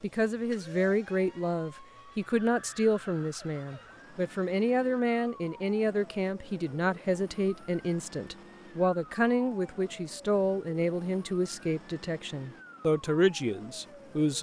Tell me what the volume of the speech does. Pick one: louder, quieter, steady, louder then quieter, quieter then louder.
steady.